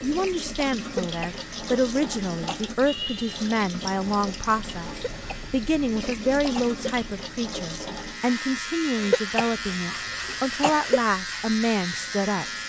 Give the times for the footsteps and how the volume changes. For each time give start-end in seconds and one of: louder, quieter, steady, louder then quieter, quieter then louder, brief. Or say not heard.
not heard.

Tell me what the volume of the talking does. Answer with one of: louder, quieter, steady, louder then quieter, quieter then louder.
steady.